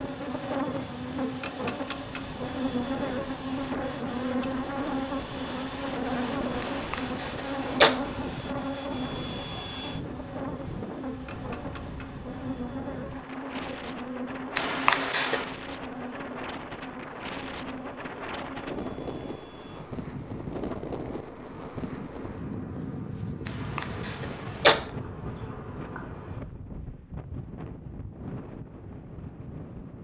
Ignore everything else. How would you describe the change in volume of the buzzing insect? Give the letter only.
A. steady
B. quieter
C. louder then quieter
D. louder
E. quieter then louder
B.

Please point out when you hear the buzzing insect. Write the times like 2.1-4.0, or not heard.
0.0-26.4.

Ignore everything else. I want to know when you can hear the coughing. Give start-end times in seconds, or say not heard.
6.6-7.9, 14.6-15.4, 23.4-24.8.